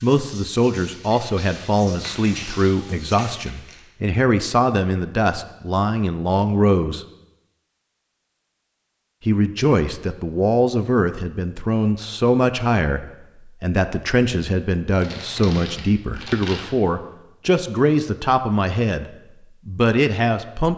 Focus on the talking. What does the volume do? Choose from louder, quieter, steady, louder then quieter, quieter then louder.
steady.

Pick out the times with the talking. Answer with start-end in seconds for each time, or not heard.
0.0-7.0, 9.2-20.7.